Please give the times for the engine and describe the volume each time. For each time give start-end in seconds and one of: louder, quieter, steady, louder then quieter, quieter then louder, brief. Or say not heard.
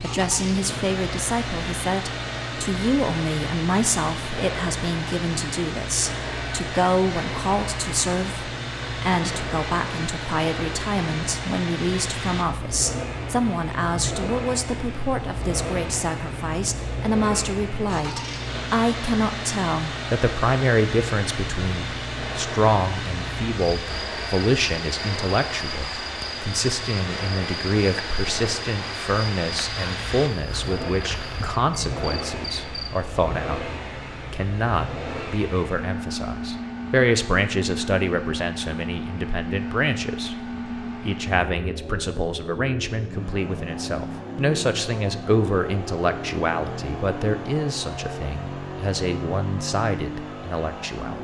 0.0-51.2 steady.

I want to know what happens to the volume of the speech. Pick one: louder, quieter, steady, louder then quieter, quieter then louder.
steady.